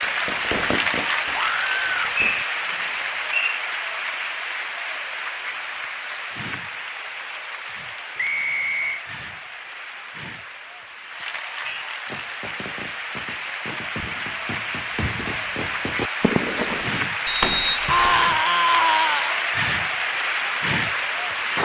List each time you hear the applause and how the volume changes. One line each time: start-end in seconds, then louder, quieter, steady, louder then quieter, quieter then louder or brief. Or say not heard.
0.0-21.5 quieter then louder.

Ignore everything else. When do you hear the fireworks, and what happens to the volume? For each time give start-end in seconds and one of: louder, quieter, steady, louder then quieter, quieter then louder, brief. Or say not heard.
0.0-2.5 brief
11.7-17.8 louder.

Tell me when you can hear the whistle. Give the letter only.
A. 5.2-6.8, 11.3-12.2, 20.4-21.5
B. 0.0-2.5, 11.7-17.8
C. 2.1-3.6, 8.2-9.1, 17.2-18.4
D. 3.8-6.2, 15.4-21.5
C.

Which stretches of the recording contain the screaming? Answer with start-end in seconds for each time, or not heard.
1.3-2.1, 17.9-19.4.